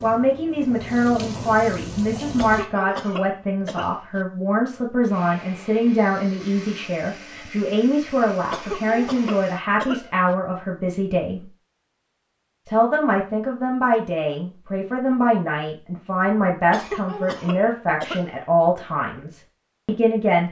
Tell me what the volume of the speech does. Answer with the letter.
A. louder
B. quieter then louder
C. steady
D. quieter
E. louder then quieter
C.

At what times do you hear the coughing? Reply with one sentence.
You can hear the coughing from 2.4 to 4.2 s, from 8.5 to 10.3 s and from 16.7 to 18.4 s.